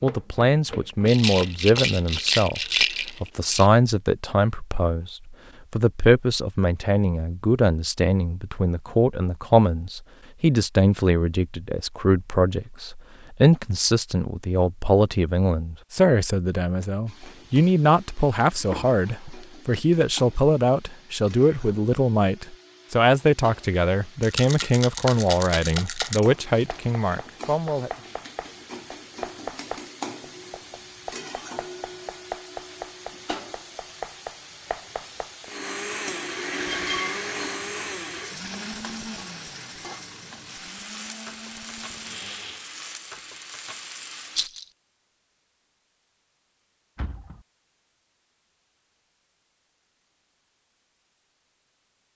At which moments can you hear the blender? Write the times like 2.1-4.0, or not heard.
35.5-42.8.